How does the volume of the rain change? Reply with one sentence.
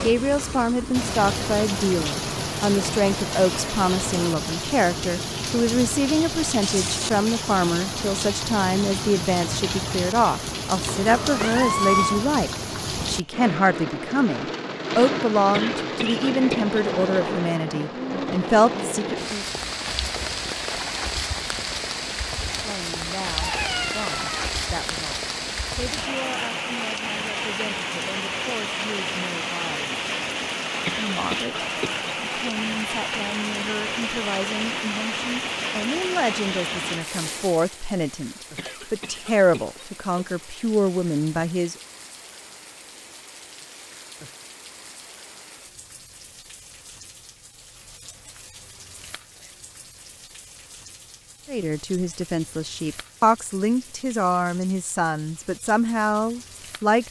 The volume of the rain goes down.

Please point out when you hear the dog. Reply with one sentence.
You can't hear the dog here.